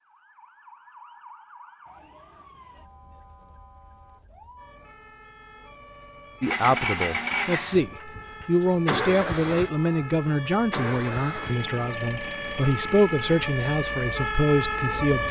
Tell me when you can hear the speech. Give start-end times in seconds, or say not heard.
6.4-15.2.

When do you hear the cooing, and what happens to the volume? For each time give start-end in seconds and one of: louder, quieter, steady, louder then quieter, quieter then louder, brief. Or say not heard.
not heard.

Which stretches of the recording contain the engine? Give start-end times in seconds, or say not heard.
6.4-14.9.